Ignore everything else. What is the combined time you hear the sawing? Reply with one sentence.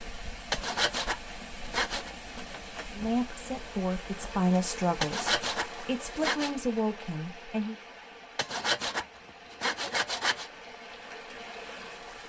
The sawing can be heard for 5 seconds in total.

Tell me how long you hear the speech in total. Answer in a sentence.
The speech can be heard for 5 seconds in total.